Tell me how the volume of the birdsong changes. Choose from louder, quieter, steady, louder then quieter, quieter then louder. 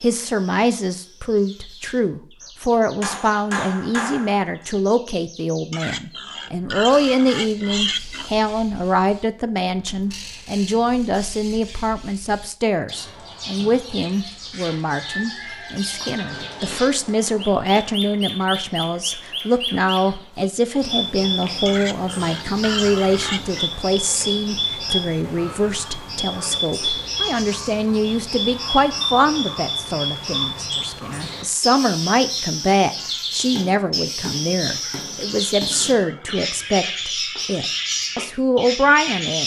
louder.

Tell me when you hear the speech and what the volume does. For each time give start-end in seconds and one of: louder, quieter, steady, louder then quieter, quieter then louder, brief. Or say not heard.
0.0-39.4 steady.